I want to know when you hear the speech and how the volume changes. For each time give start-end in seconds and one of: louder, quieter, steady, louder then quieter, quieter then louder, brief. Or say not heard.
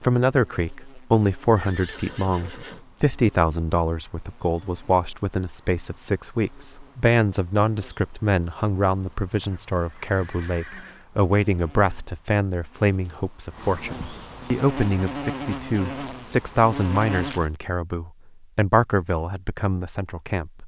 0.0-20.6 steady.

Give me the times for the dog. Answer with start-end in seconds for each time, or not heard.
not heard.